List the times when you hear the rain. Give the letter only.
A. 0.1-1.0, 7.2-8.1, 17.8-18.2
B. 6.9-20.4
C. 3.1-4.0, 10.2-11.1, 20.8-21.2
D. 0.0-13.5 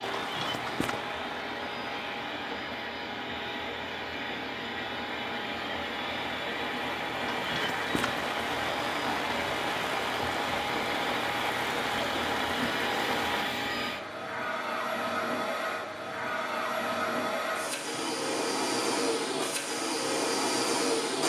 D.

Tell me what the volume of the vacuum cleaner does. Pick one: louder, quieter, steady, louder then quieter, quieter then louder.
louder.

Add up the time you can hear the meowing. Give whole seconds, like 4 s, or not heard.
2 s.